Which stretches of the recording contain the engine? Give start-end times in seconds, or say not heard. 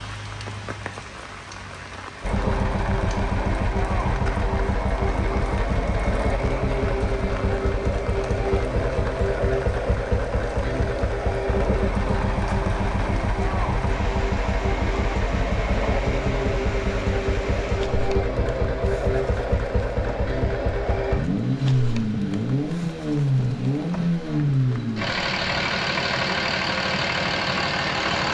2.2-28.2.